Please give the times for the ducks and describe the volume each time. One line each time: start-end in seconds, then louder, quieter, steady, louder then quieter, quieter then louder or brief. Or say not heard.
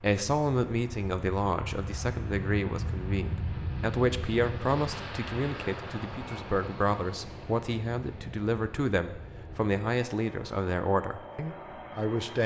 not heard.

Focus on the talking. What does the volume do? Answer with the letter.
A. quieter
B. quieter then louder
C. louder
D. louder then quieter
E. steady
E.